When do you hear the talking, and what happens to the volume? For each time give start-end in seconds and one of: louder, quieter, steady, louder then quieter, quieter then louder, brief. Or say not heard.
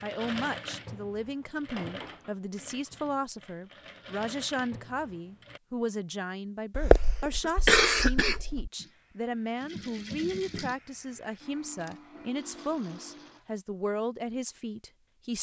0.0-15.3 steady.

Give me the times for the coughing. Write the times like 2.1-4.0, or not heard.
6.7-8.7.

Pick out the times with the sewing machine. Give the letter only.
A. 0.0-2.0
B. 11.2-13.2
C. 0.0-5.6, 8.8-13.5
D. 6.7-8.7
C.